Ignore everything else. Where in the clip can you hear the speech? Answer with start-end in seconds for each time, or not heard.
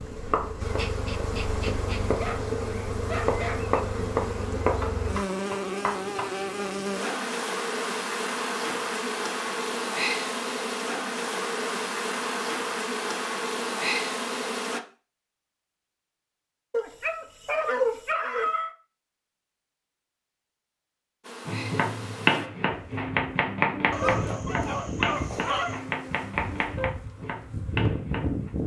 not heard.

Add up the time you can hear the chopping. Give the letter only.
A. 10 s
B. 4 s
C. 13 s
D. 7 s
C.